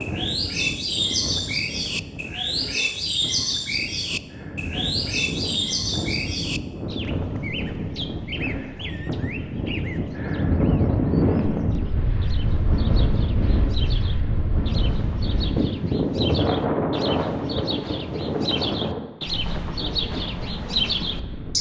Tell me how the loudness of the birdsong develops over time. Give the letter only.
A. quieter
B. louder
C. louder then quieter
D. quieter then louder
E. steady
D.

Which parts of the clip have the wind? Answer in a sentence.
You can hear the wind from 0.0 to 21.5 s.